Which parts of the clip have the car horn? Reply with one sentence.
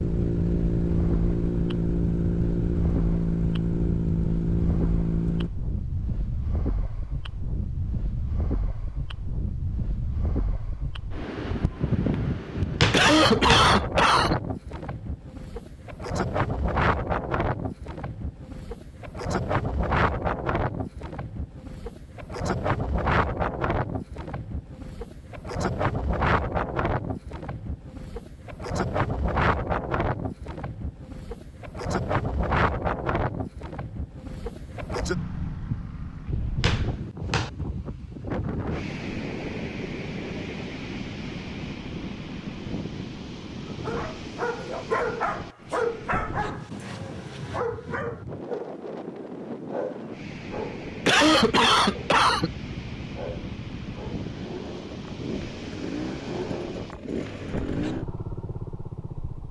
You can't hear the car horn here.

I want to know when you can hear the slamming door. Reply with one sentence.
You can hear the slamming door from 12.8 to 13.7 s and from 36.6 to 37.5 s.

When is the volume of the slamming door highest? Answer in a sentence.
The loudest moment of the slamming door is at 13 seconds.